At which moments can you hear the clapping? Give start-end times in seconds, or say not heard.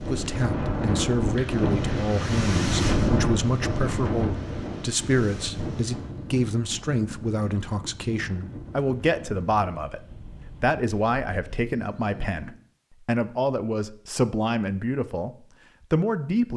not heard.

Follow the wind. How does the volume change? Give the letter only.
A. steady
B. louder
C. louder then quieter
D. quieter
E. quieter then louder
D.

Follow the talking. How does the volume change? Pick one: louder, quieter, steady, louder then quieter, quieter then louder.
steady.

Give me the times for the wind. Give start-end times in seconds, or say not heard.
0.0-12.6.